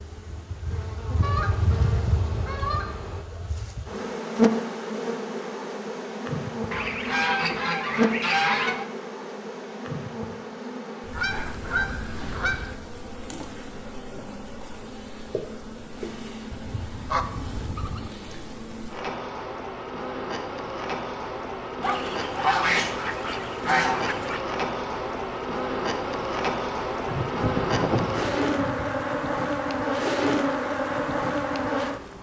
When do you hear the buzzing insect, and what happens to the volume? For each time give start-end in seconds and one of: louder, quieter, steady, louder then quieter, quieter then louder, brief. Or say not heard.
0.0-32.1 quieter then louder.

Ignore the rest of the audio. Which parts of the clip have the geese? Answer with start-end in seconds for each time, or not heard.
1.2-3.2, 6.7-8.9, 11.1-12.8, 16.5-18.1, 21.8-24.4, 27.1-29.1.